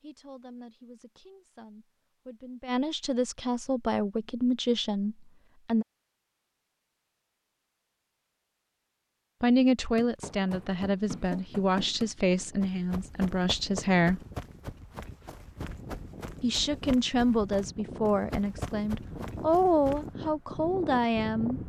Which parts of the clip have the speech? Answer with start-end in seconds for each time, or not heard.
0.0-5.8, 9.4-14.2, 16.4-21.6.